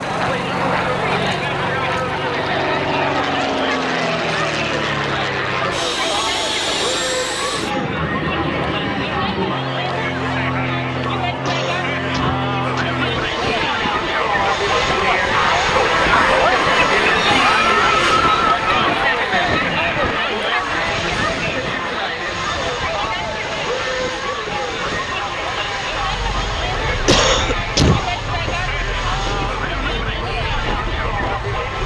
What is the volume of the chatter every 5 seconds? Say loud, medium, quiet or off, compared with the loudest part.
medium, medium, medium, loud, medium, medium, medium.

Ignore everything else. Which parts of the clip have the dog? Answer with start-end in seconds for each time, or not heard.
not heard.